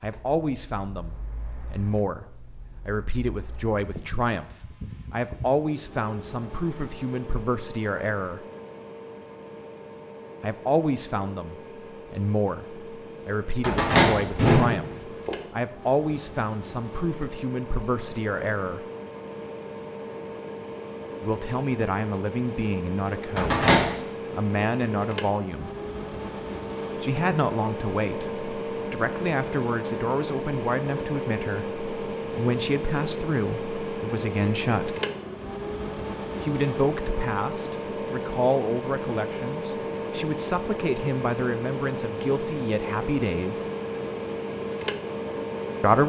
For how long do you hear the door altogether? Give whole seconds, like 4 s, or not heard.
2 s.